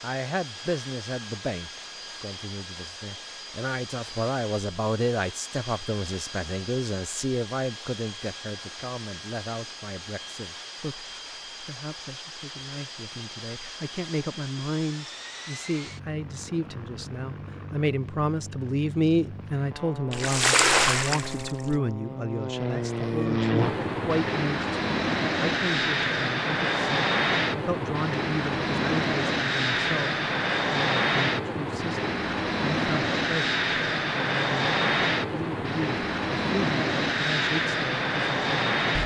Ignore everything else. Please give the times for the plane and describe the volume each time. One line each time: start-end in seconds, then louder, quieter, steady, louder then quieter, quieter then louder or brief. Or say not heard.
0.0-39.0 louder.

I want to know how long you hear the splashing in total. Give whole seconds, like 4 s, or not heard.
2 s.